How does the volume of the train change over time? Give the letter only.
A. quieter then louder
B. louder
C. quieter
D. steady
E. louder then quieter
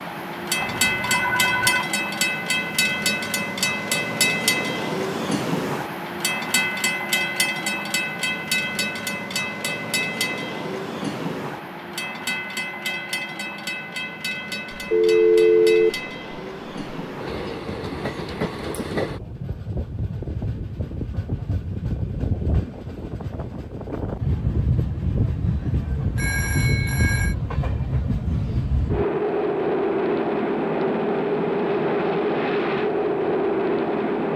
A.